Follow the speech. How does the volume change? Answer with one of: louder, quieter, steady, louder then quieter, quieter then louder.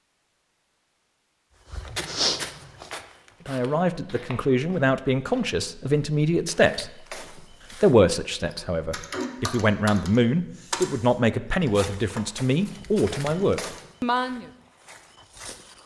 steady.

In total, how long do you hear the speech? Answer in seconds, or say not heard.
11 s.